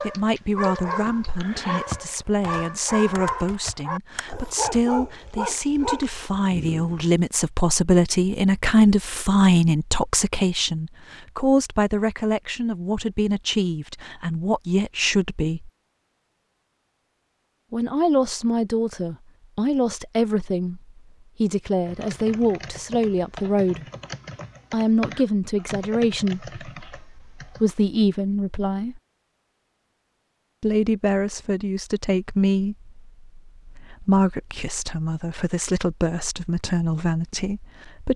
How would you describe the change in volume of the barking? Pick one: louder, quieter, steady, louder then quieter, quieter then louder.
steady.